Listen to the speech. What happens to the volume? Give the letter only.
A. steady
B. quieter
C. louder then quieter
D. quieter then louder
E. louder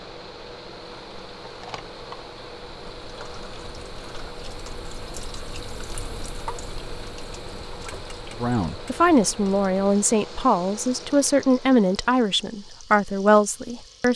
A.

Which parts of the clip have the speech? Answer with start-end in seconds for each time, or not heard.
8.4-14.1.